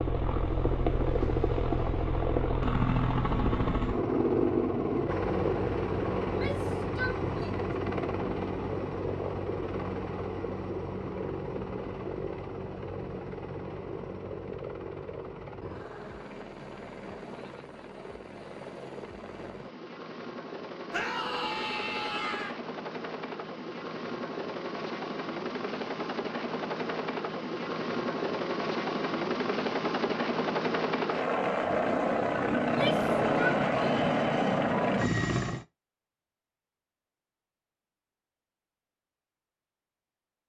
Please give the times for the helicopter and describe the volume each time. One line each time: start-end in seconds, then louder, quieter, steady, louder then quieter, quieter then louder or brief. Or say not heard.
0.0-35.6 quieter then louder.